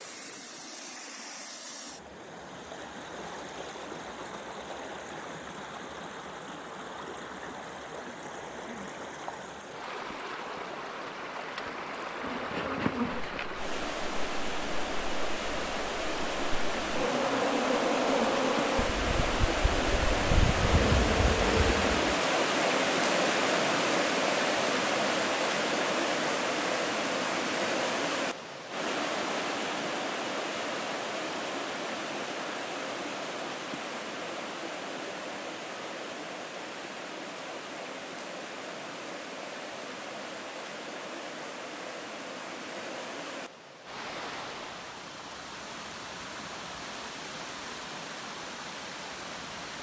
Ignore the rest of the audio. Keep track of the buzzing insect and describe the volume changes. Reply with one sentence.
The loudness of the buzzing insect goes down, then up.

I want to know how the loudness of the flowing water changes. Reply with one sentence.
The loudness of the flowing water goes up, then down.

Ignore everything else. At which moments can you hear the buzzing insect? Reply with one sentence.
The buzzing insect can be heard from 12.2 to 22.1 s.